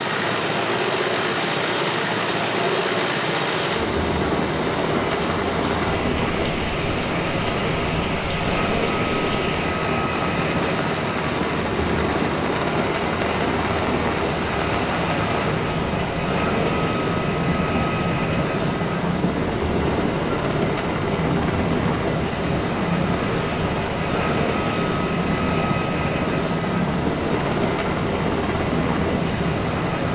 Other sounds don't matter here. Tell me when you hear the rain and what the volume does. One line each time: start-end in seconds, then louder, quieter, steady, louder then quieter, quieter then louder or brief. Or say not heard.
0.0-30.1 steady.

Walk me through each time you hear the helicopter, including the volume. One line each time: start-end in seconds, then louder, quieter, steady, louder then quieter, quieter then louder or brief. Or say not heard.
0.0-30.1 steady.